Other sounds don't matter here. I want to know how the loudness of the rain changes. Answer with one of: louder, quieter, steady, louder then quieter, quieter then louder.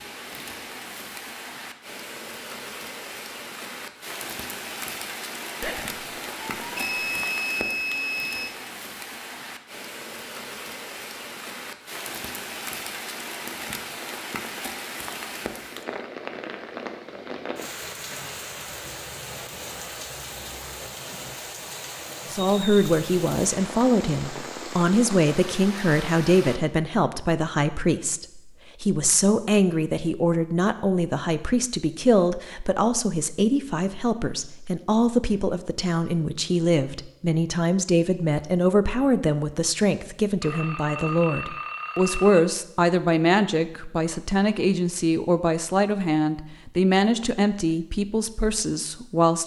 steady.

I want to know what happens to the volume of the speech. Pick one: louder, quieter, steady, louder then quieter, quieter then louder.
steady.